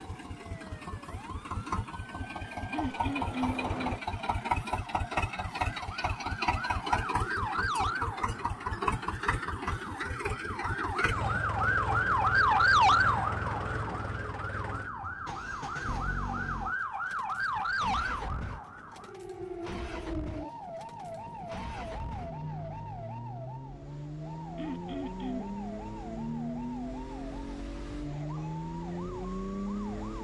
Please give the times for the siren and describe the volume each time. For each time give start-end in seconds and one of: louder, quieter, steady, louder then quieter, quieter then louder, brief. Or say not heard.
0.0-30.1 louder then quieter.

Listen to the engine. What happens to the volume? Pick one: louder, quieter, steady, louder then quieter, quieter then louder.
quieter then louder.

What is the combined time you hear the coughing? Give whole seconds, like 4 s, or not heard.
2 s.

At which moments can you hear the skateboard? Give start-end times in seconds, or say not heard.
not heard.